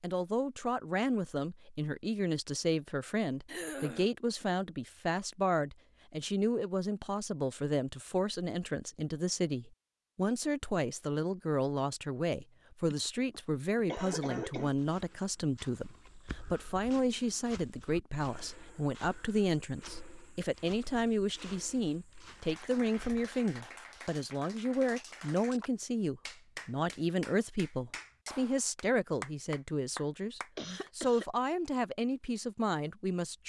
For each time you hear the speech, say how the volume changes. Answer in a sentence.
The speech can be heard from 0.0 to 33.4 s, at a steady volume.